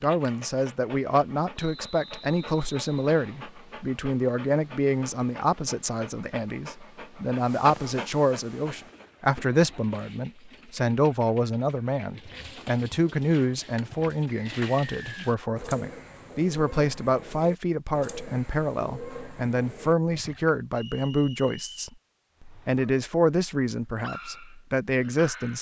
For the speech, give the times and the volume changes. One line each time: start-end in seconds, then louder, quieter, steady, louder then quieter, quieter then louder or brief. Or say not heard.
0.0-25.5 steady.